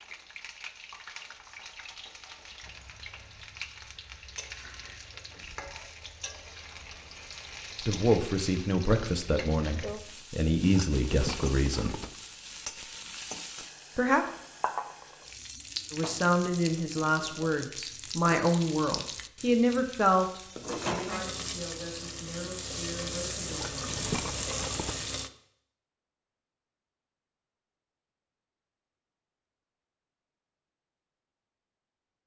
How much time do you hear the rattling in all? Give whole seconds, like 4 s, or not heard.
3 s.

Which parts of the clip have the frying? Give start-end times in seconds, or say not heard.
0.0-25.3.